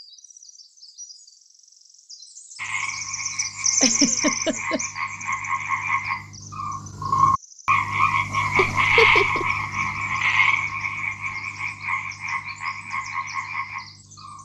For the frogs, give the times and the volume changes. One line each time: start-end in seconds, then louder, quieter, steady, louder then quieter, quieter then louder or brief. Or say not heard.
2.5-14.3 louder then quieter.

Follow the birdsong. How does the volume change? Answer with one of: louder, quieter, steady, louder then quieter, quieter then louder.
louder then quieter.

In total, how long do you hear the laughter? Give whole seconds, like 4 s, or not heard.
2 s.